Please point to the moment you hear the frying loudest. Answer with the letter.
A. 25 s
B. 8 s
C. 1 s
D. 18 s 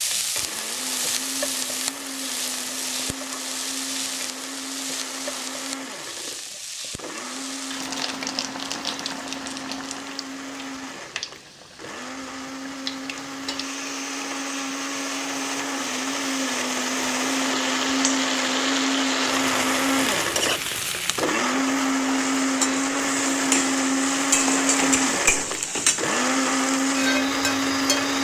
A.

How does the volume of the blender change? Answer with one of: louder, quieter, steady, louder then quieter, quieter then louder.
louder.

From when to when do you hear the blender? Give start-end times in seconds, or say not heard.
0.1-28.1.